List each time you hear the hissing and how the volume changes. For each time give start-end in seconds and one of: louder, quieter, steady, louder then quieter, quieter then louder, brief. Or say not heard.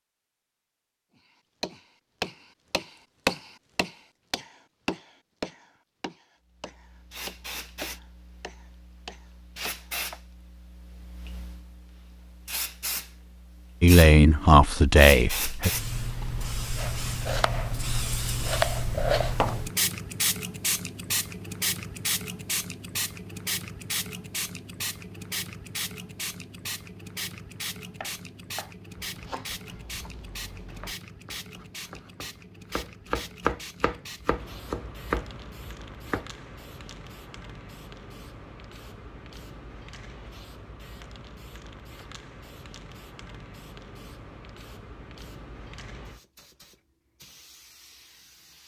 6.6-48.6 louder then quieter.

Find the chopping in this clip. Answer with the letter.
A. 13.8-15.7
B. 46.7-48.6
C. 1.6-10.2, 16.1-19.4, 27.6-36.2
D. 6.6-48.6
C.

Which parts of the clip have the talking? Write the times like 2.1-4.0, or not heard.
13.8-15.7.